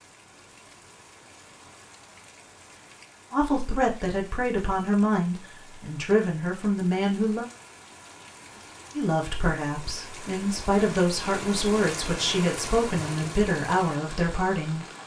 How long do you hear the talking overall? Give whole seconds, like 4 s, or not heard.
10 s.